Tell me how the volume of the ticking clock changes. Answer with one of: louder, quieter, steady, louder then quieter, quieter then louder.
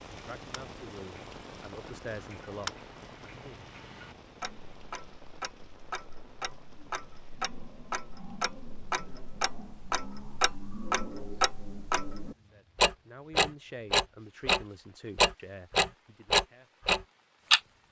louder.